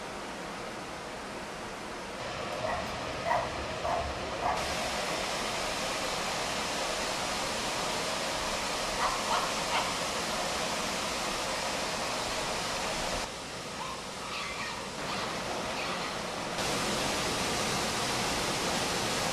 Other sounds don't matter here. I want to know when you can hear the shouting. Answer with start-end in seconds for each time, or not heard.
not heard.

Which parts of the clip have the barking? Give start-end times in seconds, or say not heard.
2.6-4.8, 8.9-9.8, 13.7-16.1.